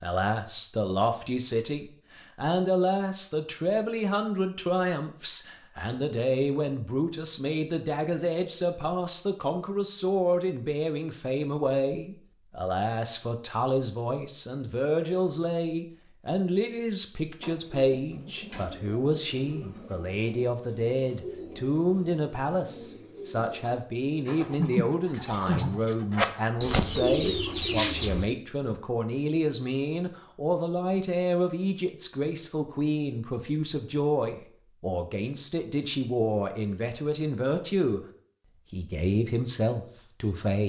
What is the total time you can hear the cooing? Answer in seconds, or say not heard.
11 s.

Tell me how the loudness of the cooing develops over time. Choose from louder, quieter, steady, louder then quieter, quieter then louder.
louder.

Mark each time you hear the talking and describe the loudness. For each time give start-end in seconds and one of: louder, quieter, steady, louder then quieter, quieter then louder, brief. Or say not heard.
0.0-38.0 steady
38.7-40.6 brief.